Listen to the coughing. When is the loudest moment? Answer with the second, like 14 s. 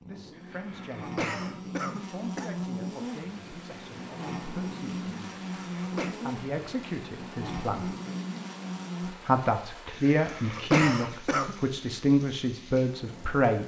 11 s.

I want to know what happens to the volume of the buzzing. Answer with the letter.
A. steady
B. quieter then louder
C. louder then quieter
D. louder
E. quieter
A.